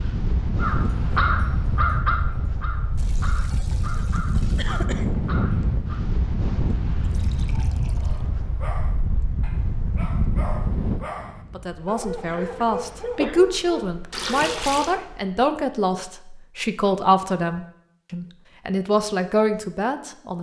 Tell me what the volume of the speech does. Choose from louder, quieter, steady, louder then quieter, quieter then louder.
steady.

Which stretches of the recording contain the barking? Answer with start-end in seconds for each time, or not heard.
8.0-14.8.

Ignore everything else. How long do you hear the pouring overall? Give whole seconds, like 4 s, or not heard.
4 s.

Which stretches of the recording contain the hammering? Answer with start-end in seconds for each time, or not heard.
not heard.